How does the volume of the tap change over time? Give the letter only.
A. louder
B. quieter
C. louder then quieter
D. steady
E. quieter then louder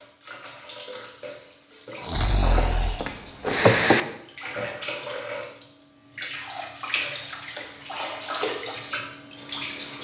A.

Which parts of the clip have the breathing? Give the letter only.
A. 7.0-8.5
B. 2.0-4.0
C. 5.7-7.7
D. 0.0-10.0
B.